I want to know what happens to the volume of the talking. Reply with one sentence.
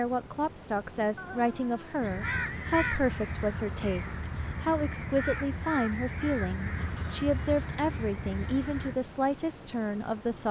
The loudness of the talking stays about the same.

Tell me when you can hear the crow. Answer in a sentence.
The crow can be heard from 1.9 to 9.0 s.